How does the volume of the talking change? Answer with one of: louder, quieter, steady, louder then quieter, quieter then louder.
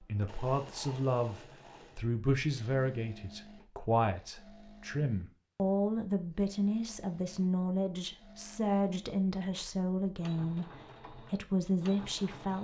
steady.